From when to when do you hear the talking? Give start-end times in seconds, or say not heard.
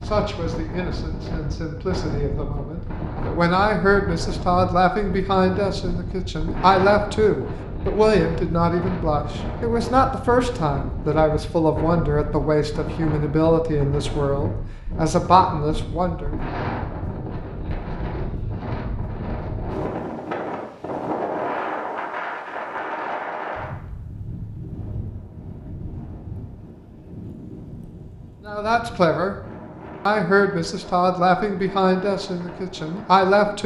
0.0-16.4, 28.4-29.4, 30.1-33.6.